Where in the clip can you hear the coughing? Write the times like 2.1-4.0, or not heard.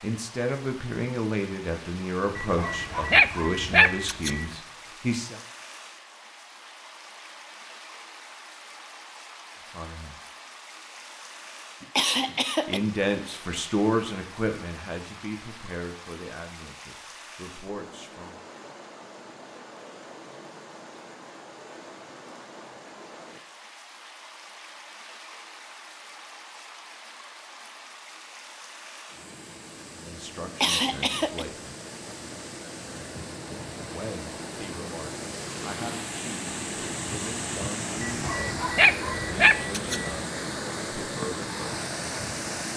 11.8-12.8, 30.4-31.4.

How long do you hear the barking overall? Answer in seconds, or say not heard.
4 s.